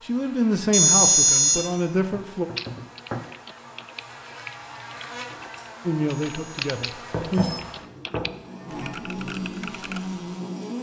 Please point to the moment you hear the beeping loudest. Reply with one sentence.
The volume of the beeping peaks at 1 second.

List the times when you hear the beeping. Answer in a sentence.
You can hear the beeping from 0.7 to 1.6 s and from 6.0 to 7.7 s.